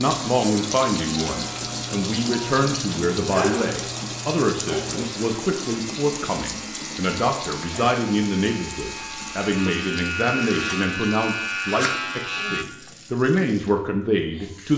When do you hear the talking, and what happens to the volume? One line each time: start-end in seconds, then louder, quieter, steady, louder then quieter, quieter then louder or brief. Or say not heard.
0.0-14.7 steady.